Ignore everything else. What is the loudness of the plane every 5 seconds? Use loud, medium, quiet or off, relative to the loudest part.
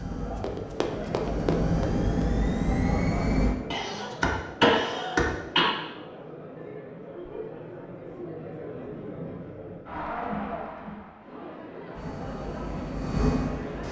loud, off, loud.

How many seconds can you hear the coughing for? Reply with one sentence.
You can hear the coughing for 2 seconds altogether.